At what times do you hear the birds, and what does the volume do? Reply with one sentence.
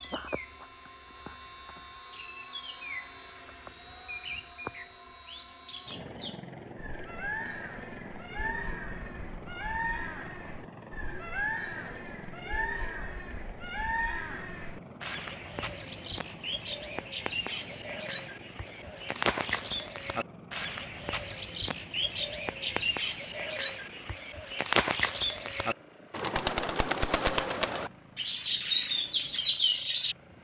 The birds can be heard from 0.0 to 30.3 s, getting louder.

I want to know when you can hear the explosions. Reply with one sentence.
You can't hear the explosions here.